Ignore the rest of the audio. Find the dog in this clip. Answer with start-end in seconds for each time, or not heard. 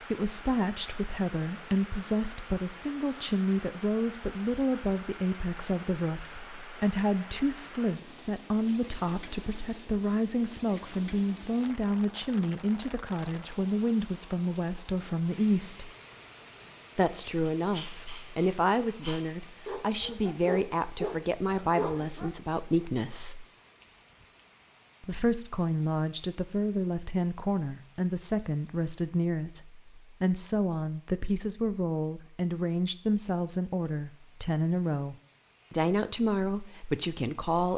17.6-22.4.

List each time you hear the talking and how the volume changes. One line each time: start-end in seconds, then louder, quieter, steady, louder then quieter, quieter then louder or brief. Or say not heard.
0.1-15.9 steady
16.9-23.4 steady
25.0-37.7 steady.